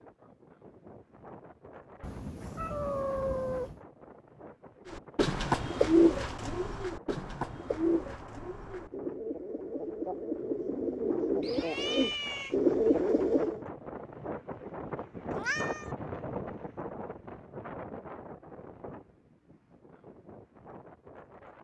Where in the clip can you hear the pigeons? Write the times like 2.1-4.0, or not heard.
4.9-13.6.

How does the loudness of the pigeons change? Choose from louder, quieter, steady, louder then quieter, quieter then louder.
quieter then louder.